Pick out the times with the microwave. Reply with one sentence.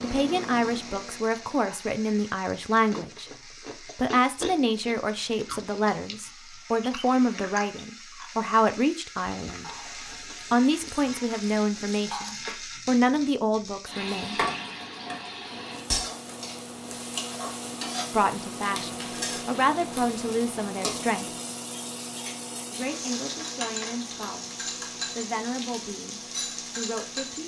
The microwave can be heard from 0.0 to 1.6 s and from 15.4 to 27.4 s.